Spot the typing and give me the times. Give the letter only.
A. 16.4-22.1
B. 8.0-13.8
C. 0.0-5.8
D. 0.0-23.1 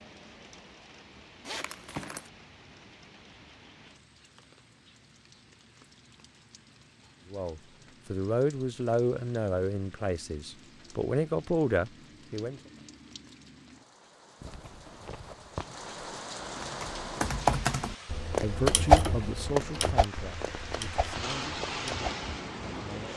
A.